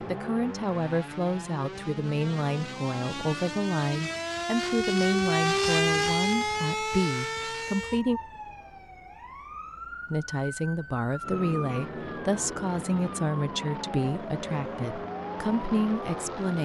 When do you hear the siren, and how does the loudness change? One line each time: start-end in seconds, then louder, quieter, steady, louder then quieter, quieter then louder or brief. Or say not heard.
0.0-16.6 louder then quieter.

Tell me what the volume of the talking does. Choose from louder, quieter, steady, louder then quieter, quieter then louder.
steady.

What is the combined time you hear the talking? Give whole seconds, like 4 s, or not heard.
15 s.